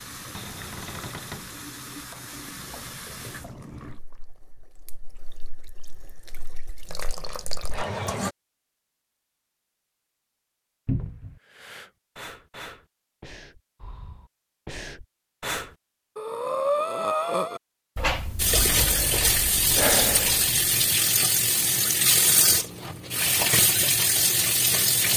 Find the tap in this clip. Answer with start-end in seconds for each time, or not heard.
0.0-8.3, 18.4-25.1.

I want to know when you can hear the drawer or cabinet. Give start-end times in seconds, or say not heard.
0.3-1.5, 10.8-11.4, 17.9-19.0.